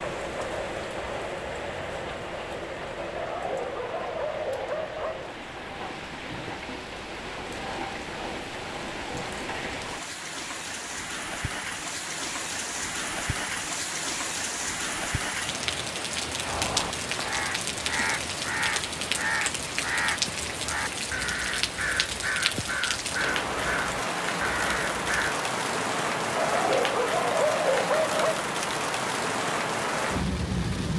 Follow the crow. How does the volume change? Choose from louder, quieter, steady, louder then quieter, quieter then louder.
steady.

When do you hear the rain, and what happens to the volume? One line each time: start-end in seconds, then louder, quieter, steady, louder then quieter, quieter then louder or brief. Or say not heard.
0.0-30.9 louder.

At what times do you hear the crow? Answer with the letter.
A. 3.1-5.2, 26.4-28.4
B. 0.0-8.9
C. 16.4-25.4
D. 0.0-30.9
C.